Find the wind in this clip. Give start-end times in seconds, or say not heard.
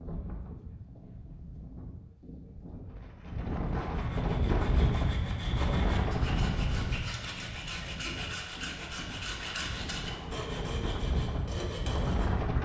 0.0-12.6.